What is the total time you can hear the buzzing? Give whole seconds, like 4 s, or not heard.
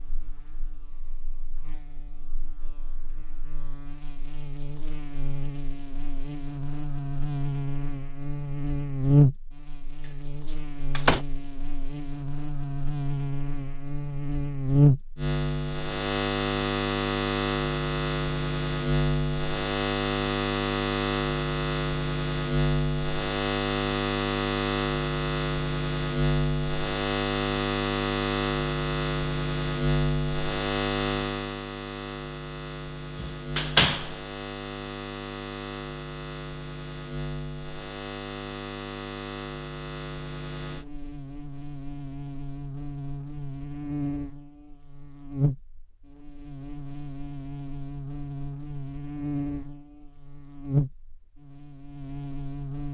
53 s.